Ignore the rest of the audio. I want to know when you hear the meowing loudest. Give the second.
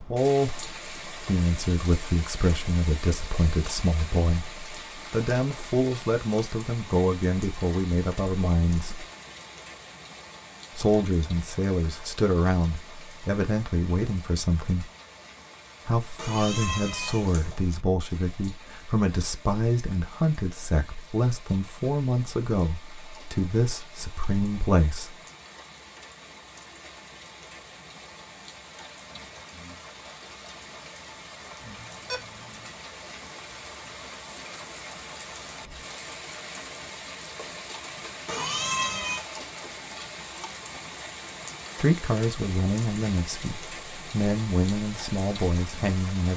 39 s.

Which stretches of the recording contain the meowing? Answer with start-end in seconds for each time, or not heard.
16.1-17.6, 38.2-39.2.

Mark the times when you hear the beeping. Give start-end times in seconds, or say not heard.
31.6-32.2.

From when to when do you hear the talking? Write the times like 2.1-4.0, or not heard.
0.0-9.1, 10.8-14.9, 15.8-25.1, 41.8-46.3.